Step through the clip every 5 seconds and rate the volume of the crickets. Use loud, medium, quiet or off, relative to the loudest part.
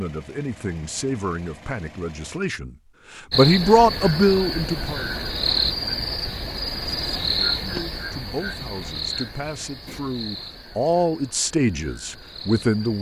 loud, loud, quiet.